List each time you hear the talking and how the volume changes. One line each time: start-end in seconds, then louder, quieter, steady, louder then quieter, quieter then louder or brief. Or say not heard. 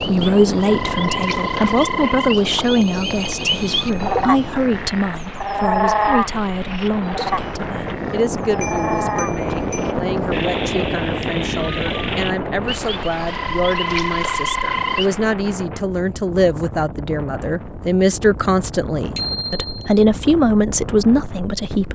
0.0-21.9 quieter then louder.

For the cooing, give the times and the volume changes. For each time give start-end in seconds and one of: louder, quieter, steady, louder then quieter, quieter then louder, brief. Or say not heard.
not heard.